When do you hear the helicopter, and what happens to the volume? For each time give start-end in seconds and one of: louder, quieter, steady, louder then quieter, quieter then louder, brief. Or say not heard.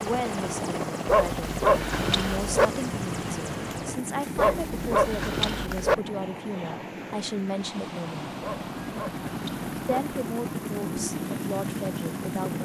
0.0-12.6 quieter then louder.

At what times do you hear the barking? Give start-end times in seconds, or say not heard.
1.1-2.7, 4.3-6.0, 8.4-10.0.